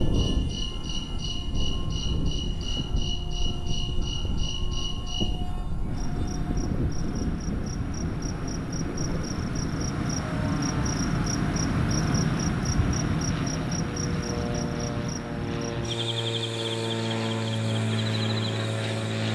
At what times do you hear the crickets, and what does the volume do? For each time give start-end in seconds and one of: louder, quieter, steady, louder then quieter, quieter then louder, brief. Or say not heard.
0.0-19.2 louder then quieter.